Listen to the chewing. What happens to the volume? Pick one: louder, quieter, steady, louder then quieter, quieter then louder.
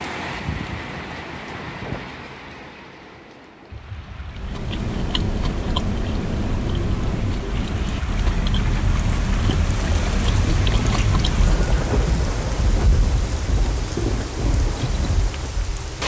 steady.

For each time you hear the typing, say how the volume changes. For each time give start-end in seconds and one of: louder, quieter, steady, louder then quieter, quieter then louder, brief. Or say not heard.
not heard.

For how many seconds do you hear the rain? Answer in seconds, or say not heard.
16 s.